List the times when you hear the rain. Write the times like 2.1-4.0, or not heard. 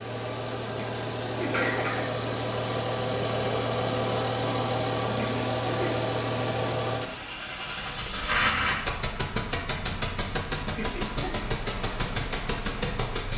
not heard.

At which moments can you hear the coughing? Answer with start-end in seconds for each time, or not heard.
0.7-2.1, 5.0-6.0, 10.7-11.3.